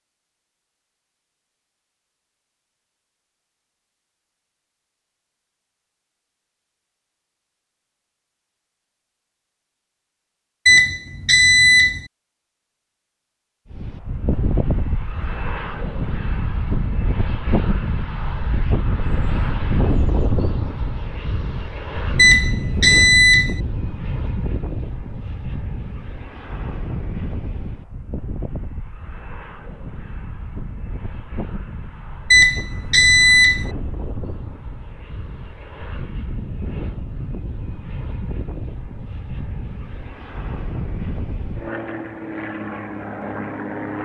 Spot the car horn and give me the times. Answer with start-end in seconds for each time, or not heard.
not heard.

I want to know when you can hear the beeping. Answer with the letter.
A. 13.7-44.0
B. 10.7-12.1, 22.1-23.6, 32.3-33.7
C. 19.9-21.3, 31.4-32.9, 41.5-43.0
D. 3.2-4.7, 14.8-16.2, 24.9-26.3
B.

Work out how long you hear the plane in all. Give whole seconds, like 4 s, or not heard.
30 s.